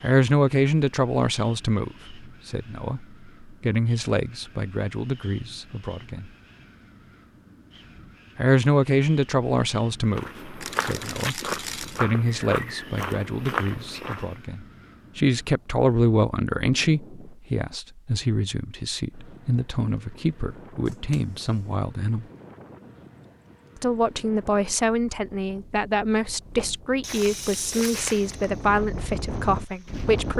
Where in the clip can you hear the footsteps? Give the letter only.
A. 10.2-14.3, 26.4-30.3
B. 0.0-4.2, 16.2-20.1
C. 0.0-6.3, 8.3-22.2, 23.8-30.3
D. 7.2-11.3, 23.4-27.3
A.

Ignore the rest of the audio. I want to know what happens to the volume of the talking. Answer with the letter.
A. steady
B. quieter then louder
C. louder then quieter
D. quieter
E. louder
A.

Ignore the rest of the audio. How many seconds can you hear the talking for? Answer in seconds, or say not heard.
27 s.